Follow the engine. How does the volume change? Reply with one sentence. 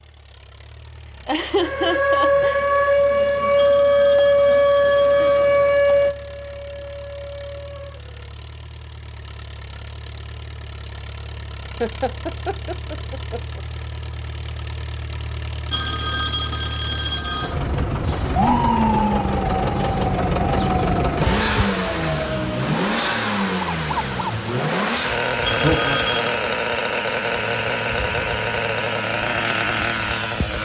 The volume of the engine goes up.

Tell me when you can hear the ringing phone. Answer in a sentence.
You can hear the ringing phone from 3.5 to 5.6 s, from 15.7 to 17.6 s and from 25.4 to 26.4 s.